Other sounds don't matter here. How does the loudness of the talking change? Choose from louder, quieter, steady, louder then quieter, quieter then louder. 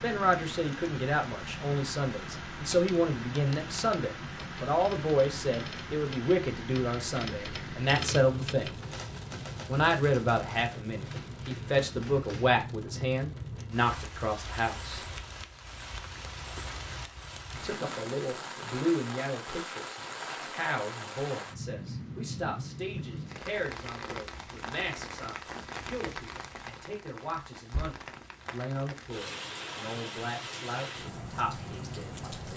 quieter.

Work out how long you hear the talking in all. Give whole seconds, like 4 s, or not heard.
29 s.